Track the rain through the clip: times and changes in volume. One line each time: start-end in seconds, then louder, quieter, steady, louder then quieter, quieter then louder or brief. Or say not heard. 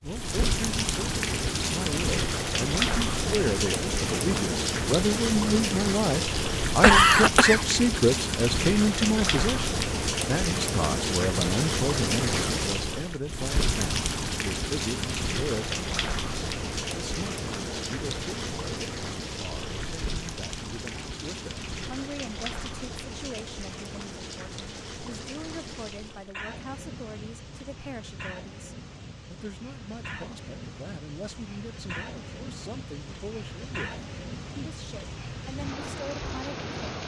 0.0-37.0 quieter.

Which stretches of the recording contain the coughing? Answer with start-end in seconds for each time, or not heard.
6.2-7.7.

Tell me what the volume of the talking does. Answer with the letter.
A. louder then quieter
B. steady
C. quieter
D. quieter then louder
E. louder
C.